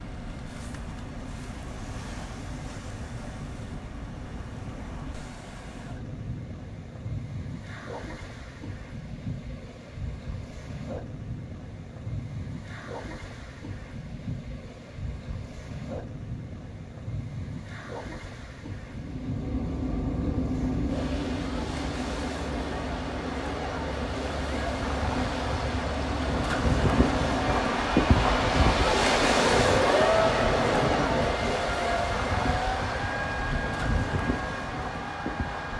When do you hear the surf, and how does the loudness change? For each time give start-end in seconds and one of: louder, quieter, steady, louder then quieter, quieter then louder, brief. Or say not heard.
0.0-35.7 louder.